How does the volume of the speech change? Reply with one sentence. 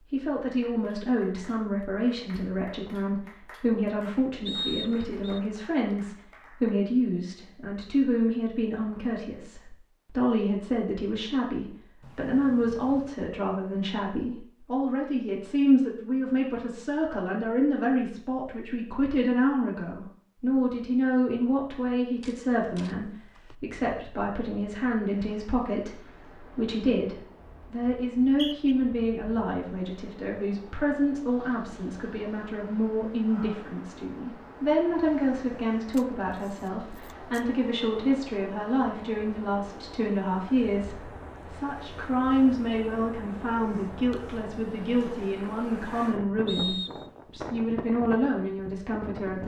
The volume of the speech stays about the same.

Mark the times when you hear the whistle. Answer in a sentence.
You can hear the whistle from 4.5 to 5.4 s, from 28.2 to 28.8 s and from 46.5 to 47.1 s.